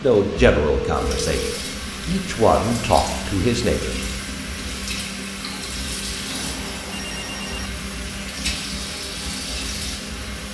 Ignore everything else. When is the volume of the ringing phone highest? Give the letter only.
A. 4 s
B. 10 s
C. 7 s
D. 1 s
D.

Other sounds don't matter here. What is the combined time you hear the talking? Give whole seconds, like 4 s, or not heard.
4 s.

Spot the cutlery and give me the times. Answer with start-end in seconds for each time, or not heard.
not heard.